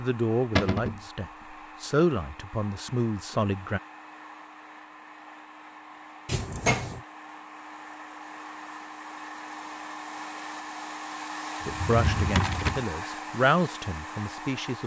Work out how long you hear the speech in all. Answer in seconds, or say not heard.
7 s.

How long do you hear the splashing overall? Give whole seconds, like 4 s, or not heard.
not heard.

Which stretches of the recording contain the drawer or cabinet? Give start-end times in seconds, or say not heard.
0.6-1.0, 6.2-7.0, 11.6-12.8.